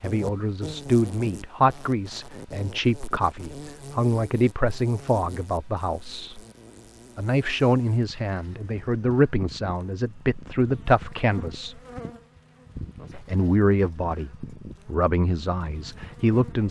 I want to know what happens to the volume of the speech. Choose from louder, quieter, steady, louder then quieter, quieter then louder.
steady.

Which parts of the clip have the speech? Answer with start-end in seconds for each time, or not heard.
0.0-6.4, 7.2-11.8, 13.2-16.6.